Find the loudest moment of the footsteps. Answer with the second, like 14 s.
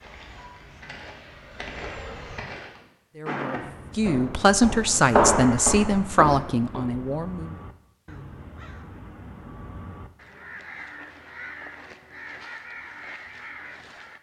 5 s.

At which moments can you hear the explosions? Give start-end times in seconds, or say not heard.
not heard.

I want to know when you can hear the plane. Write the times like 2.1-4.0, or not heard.
0.0-2.5.